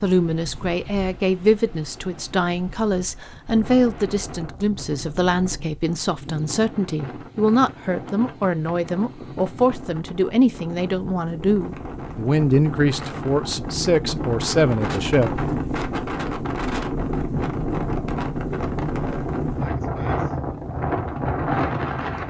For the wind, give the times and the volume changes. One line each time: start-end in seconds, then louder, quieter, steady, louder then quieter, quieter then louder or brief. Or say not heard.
0.0-22.2 louder.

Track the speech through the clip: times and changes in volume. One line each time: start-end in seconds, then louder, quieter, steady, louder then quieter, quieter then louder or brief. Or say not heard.
0.0-15.4 steady.